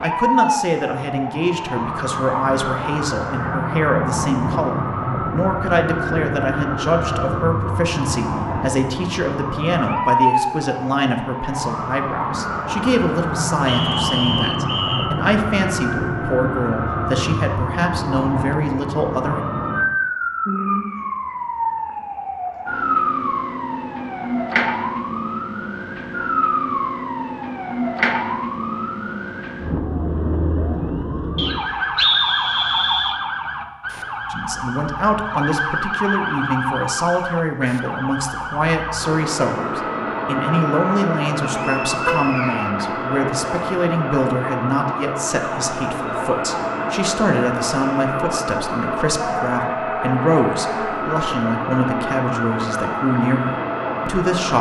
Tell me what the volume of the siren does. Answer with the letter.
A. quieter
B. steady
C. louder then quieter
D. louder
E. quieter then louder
B.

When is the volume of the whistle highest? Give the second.
32 s.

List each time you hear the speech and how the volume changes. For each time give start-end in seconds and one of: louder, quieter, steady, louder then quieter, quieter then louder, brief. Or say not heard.
0.0-19.4 steady
34.3-54.5 steady.